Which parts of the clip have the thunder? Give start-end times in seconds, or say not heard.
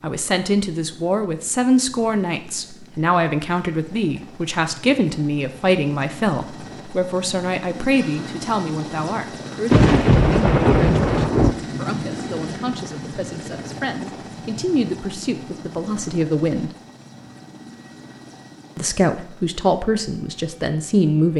9.7-11.6.